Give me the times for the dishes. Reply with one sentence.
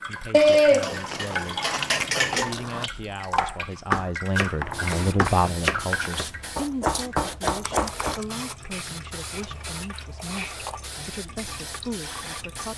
The dishes can be heard from 0.3 to 2.5 s, from 4.6 to 6.2 s and from 9.2 to 10.9 s.